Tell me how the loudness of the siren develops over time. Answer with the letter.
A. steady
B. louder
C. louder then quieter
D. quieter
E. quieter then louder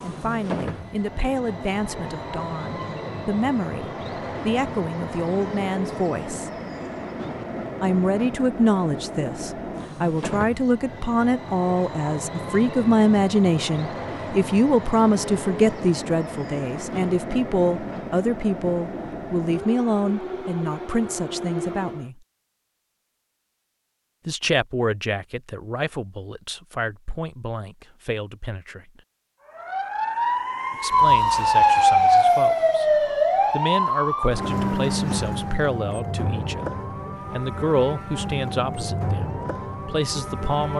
D.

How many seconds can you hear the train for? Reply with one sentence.
The train can be heard for 22 seconds in total.